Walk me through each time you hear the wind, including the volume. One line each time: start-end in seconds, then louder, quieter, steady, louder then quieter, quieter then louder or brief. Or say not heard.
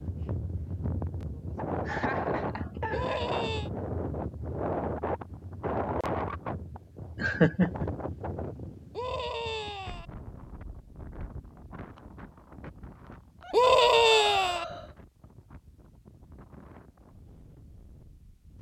0.0-18.5 quieter.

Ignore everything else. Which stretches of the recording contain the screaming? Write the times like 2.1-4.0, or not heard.
2.9-3.7, 8.9-10.1, 13.5-14.7.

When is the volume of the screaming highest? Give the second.
14 s.